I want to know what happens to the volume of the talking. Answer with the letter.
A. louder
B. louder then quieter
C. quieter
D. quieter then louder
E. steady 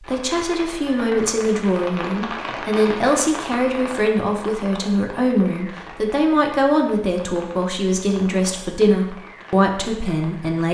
E.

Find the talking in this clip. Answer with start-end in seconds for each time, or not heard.
0.0-10.6.